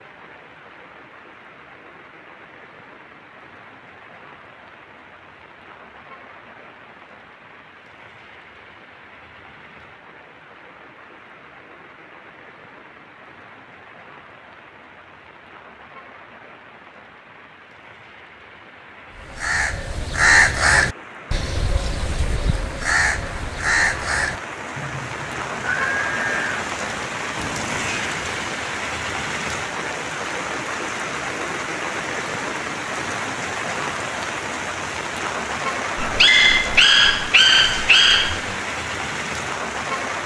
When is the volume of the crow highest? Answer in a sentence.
The volume of the crow peaks at 20 seconds.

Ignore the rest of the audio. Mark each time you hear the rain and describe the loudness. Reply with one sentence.
The rain can be heard from 0.0 to 40.2 s, getting louder.